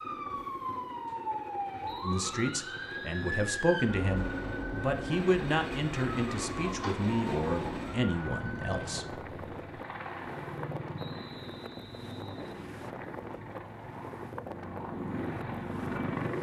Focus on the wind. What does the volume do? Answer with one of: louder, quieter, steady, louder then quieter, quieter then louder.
steady.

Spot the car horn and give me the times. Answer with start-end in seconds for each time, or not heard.
not heard.